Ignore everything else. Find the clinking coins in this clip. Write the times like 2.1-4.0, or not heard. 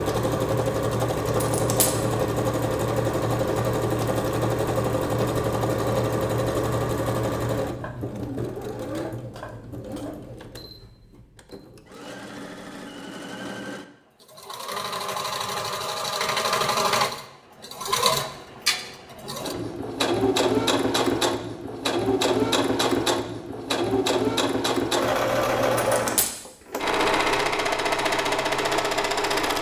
1.4-1.9, 25.9-26.3.